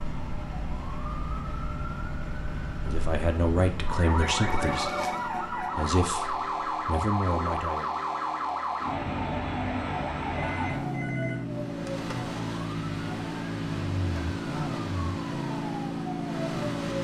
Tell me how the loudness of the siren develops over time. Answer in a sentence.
The volume of the siren goes up.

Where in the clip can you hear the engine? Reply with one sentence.
The engine can be heard from 0.0 to 5.8 s and from 11.4 to 16.9 s.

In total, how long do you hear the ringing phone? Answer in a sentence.
You can hear the ringing phone for 3 seconds altogether.